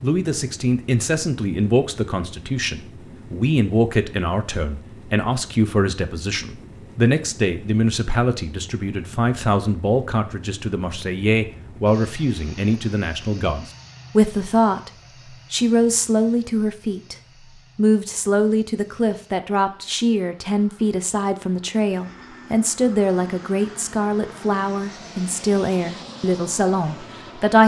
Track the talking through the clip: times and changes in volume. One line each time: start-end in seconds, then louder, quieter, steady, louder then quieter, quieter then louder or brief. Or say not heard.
0.0-14.9 steady
15.5-17.1 brief
17.8-27.6 steady.